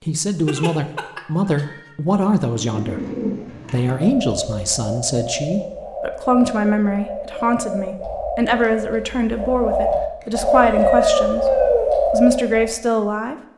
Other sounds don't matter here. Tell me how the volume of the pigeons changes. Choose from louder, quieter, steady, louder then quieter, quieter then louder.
louder.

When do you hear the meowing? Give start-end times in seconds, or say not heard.
0.5-1.8, 10.2-11.9.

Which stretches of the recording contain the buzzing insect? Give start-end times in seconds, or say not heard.
not heard.